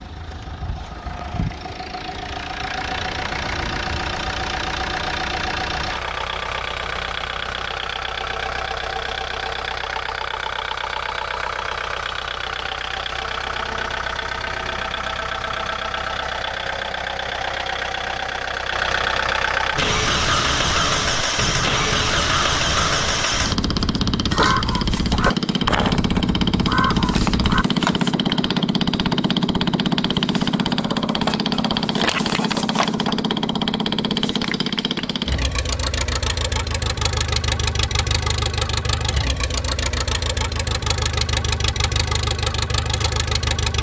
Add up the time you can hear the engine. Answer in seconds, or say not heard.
44 s.